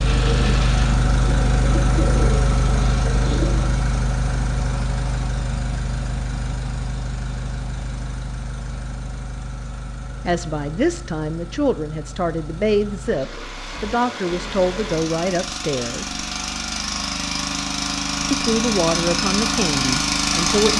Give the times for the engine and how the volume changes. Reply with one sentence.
The engine can be heard from 0.0 to 20.7 s, getting quieter then louder.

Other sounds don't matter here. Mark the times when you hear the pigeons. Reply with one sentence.
The pigeons can be heard from 0.0 to 3.7 s.